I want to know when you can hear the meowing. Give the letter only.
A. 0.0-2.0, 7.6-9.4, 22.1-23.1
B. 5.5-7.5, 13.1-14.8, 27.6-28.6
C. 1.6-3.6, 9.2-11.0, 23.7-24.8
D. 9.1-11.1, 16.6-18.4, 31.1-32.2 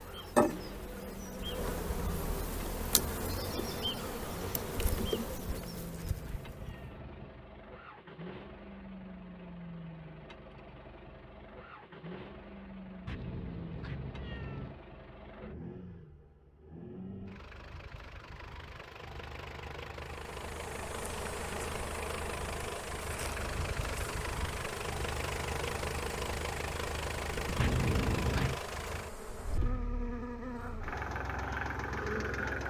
B.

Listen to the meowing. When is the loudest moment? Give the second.
28 s.